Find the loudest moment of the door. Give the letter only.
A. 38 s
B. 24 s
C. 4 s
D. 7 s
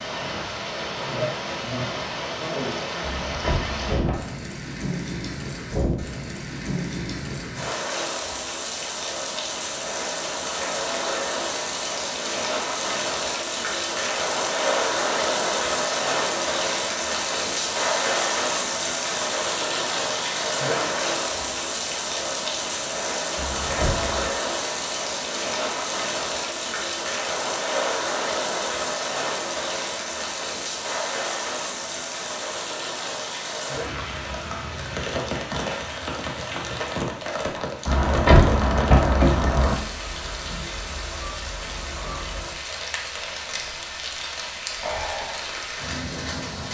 A.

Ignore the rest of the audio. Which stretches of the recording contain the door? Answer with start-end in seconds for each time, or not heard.
3.0-4.3, 23.4-24.3, 37.9-39.8.